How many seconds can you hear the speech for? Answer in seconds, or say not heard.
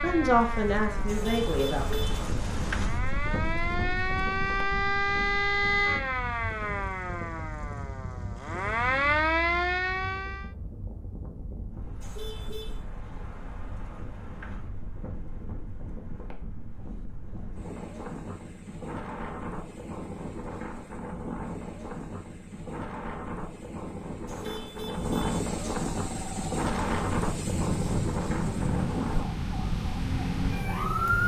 2 s.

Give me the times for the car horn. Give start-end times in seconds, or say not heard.
1.1-2.3, 12.0-12.8, 24.2-25.4.